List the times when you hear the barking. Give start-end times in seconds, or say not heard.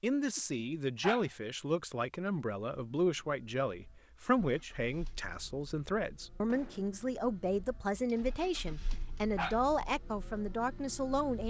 0.1-1.2, 8.7-9.6.